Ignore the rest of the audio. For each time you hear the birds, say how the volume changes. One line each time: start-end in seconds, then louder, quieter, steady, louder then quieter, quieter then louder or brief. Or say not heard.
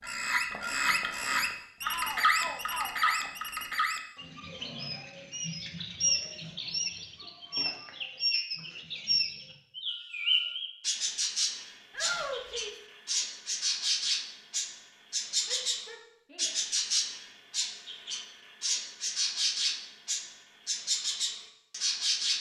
0.0-22.3 steady.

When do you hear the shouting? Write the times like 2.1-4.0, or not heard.
1.8-3.3, 11.9-12.8, 15.4-16.6.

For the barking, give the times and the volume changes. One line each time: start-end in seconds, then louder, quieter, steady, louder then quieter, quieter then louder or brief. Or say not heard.
not heard.